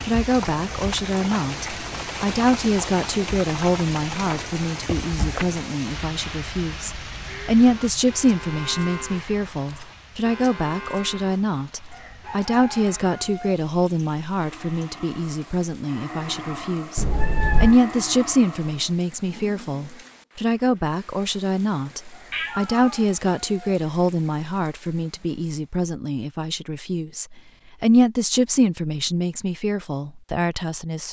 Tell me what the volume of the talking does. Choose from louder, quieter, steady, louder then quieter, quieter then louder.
steady.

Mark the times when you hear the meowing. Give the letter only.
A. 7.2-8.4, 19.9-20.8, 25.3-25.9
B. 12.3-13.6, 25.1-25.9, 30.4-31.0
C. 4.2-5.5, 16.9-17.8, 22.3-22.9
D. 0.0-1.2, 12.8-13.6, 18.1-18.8
C.